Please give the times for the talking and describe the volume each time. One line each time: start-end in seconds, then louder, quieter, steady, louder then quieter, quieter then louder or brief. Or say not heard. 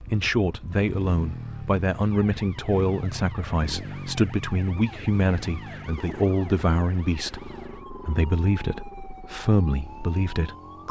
0.0-10.8 steady.